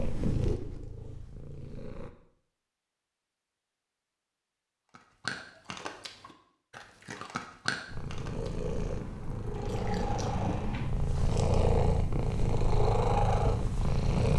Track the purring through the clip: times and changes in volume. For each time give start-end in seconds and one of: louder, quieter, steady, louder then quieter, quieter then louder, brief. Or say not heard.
0.0-2.1 brief
7.8-14.3 louder.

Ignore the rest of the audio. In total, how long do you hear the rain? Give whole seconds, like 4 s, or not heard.
not heard.